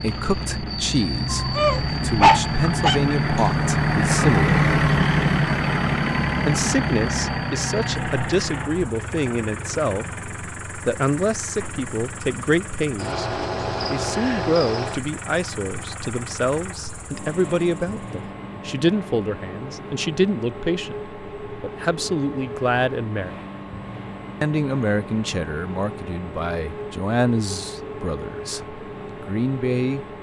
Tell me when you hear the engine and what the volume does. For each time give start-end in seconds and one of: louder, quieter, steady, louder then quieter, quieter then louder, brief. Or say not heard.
0.0-30.1 quieter.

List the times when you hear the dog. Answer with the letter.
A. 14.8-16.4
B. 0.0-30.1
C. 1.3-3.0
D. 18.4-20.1
C.